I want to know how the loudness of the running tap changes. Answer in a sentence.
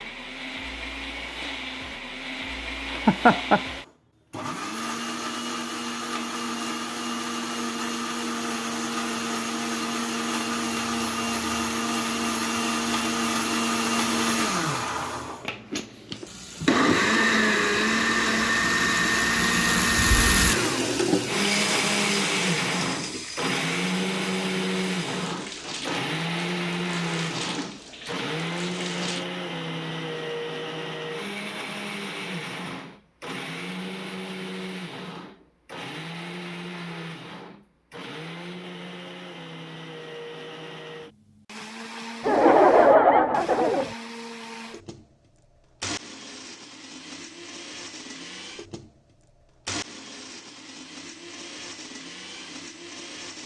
The volume of the running tap goes up, then down.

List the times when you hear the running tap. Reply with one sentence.
You can hear the running tap from 16.1 to 29.2 s.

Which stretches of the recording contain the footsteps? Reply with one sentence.
The footsteps can't be heard in this clip.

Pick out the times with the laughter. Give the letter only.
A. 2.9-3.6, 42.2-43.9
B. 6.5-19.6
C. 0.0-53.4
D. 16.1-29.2
A.